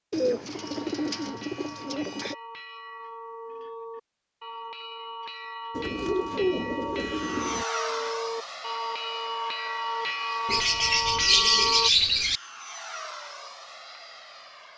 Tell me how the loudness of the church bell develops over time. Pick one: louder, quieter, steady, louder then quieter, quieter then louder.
louder.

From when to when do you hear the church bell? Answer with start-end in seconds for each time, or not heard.
0.6-11.9.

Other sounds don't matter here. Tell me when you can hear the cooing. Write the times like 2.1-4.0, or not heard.
0.1-2.4, 5.8-7.7, 10.4-12.4.